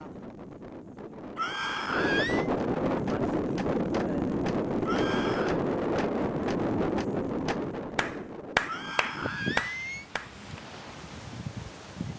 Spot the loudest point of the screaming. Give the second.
2 s.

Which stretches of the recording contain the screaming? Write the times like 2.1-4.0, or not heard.
1.4-2.5, 4.8-5.6, 8.7-10.1.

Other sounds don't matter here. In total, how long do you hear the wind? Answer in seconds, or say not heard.
12 s.